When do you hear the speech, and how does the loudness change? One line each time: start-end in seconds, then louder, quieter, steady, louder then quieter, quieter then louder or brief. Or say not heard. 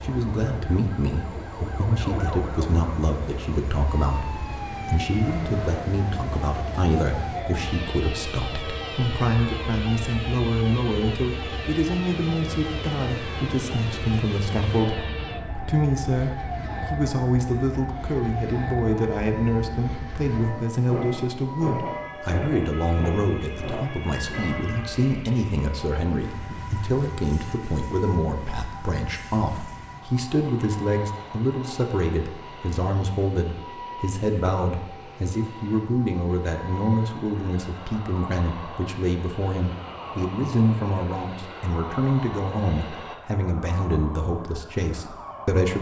0.0-45.7 steady.